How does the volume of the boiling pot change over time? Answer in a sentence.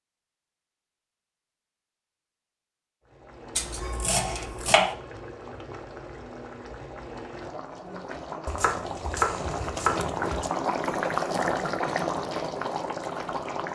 The loudness of the boiling pot goes up.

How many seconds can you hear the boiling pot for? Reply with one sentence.
The boiling pot can be heard for 11 seconds in total.